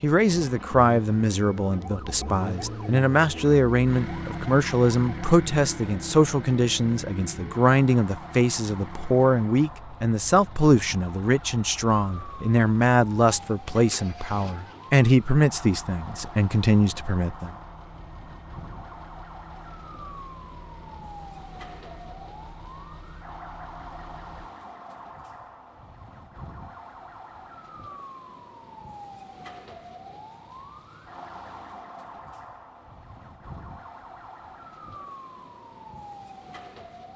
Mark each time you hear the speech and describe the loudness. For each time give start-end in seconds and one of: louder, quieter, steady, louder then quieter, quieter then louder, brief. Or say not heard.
0.0-17.6 steady.